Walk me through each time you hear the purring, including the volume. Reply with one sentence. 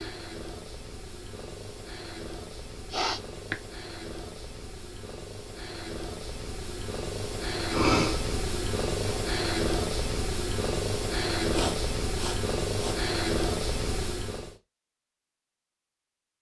You can hear the purring from 0.0 to 14.6 s, getting louder.